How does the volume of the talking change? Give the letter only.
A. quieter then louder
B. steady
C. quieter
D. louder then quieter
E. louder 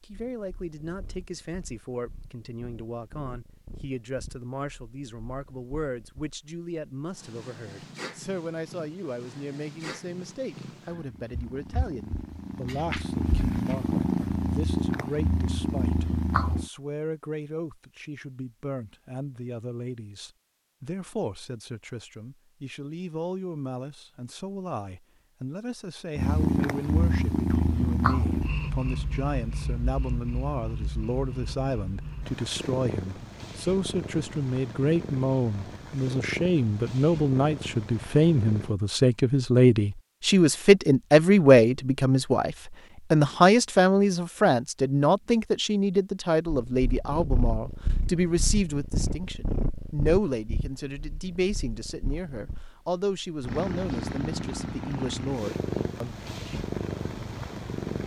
D.